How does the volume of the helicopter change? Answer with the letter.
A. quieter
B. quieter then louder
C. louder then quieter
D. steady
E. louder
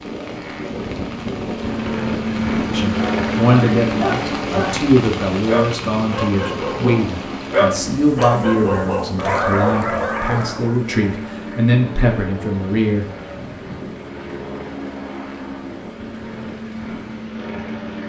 A.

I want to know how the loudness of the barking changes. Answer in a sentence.
The loudness of the barking goes up.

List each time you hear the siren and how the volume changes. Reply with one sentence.
You can't hear the siren here.